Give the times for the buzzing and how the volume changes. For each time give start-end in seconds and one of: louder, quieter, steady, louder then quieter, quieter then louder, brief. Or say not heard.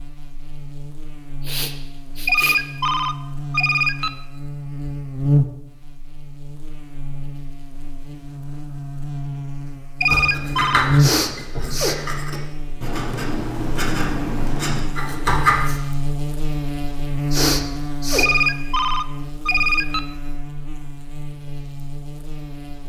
0.0-22.8 louder then quieter.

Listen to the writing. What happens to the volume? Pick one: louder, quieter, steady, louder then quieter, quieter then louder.
quieter then louder.